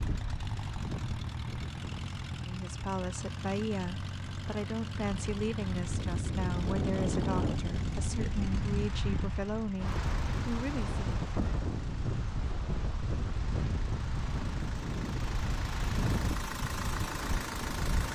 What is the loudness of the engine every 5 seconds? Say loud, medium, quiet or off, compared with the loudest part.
loud, loud, medium, loud.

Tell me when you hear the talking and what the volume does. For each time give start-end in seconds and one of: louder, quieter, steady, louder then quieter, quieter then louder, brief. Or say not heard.
2.4-11.0 steady.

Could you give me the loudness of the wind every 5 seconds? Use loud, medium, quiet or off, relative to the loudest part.
medium, loud, loud, loud.